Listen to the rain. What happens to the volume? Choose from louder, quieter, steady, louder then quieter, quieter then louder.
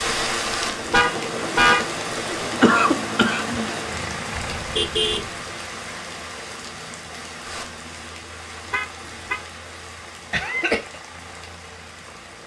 quieter.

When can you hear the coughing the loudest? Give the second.
3 s.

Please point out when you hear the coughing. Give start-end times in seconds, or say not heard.
2.4-3.8, 10.3-11.0.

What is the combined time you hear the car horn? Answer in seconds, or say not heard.
2 s.